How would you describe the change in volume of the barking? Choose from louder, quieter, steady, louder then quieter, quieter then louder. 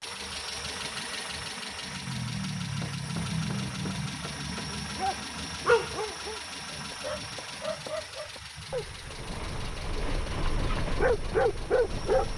quieter then louder.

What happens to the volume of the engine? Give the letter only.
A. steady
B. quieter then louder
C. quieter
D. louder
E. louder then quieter
C.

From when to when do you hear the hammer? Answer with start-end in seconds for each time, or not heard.
2.8-4.7, 6.9-8.4.